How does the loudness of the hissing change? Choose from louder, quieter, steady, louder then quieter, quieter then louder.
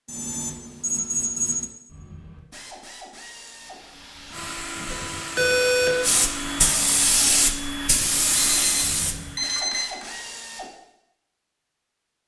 louder.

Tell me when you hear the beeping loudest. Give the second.
6 s.